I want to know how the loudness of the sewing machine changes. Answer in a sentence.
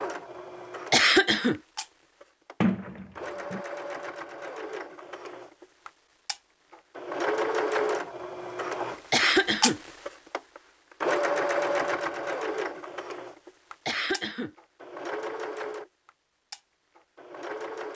The loudness of the sewing machine goes up, then down.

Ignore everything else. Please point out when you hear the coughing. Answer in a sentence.
The coughing can be heard from 0.9 to 1.6 s, from 9.1 to 9.8 s and from 13.8 to 14.5 s.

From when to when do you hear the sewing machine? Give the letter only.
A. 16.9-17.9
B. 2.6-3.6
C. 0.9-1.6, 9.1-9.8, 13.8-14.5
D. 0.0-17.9
D.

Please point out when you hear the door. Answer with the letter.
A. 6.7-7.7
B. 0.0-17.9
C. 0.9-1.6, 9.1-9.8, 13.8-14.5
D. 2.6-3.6
D.